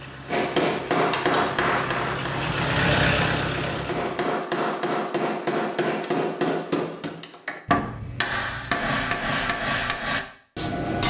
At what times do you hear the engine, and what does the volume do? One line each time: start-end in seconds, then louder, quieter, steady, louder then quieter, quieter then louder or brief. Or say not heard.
0.0-4.4 louder then quieter.